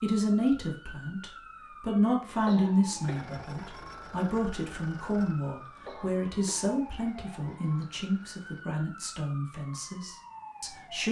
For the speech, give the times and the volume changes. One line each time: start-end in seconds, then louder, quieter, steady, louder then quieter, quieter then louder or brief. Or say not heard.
0.0-11.0 quieter.